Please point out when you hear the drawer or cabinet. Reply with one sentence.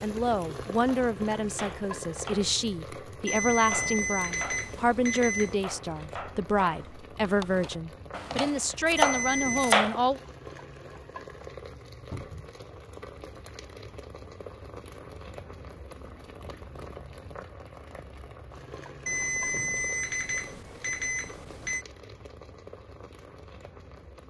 The drawer or cabinet can be heard from 12.1 to 12.6 s.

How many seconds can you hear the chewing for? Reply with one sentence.
The chewing can't be heard in this clip.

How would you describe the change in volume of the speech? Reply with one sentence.
The loudness of the speech stays about the same.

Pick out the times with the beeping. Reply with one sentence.
You can hear the beeping from 3.2 to 5.6 s, from 8.9 to 9.8 s and from 19.1 to 21.9 s.